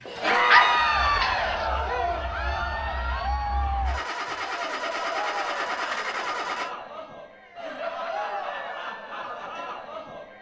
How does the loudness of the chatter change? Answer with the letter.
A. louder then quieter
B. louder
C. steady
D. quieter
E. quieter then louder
D.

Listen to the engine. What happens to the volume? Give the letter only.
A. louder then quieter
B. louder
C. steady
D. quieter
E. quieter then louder
B.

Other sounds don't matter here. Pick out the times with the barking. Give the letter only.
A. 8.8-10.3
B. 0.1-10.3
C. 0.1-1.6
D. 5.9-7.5
C.